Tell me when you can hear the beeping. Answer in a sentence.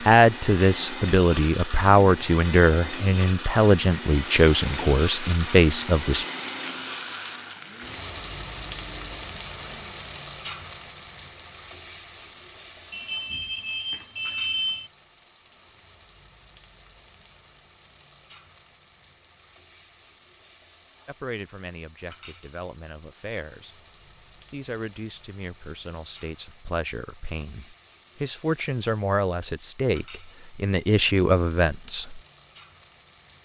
You can hear the beeping from 12.9 to 14.9 s.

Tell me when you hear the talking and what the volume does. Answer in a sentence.
You can hear the talking from 0.0 to 6.2 s, at a steady volume; and from 21.1 to 32.2 s, getting louder.